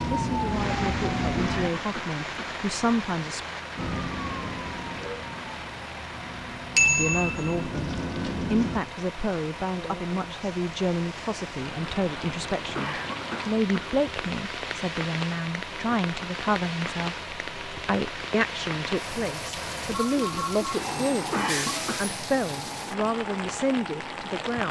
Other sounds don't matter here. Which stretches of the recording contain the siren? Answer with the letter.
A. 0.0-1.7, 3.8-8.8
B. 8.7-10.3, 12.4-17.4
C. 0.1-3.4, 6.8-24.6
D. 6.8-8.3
A.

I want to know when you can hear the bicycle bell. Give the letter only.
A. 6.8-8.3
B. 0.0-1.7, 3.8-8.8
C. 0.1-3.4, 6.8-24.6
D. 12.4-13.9
A.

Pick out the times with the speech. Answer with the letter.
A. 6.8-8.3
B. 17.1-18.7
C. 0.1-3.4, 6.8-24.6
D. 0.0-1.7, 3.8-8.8
C.